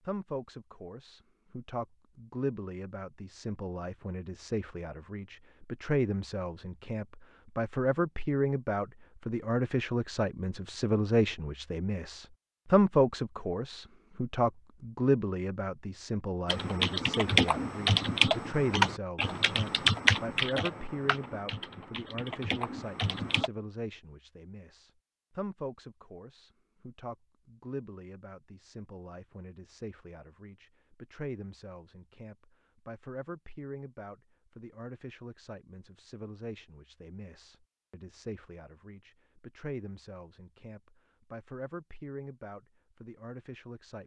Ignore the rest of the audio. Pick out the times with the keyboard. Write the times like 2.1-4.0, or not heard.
16.4-23.5.